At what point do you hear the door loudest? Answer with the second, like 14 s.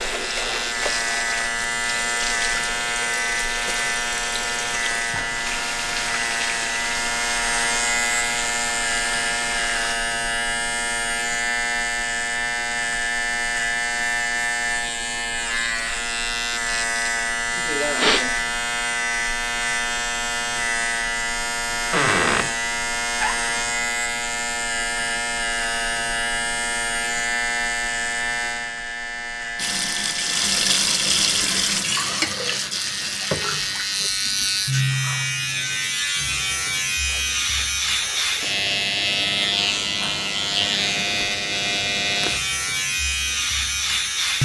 22 s.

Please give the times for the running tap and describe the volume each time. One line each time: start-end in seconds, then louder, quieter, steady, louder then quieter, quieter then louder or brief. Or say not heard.
0.0-9.9 steady
29.6-34.8 quieter.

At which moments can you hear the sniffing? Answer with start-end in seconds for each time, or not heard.
17.6-18.4, 37.0-38.5.